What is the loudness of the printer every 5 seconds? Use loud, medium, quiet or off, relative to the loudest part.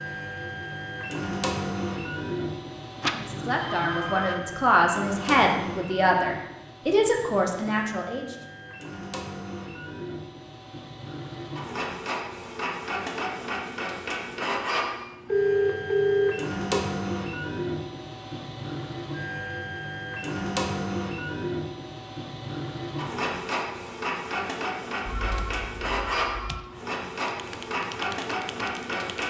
loud, medium, loud, loud, loud, loud.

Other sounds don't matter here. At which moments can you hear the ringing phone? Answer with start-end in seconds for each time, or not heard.
3.0-4.4, 15.3-16.8, 25.1-26.6.